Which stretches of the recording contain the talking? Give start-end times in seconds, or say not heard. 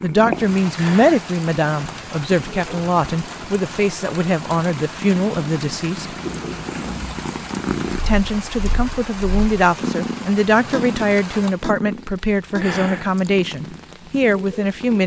0.0-6.2, 8.1-15.0.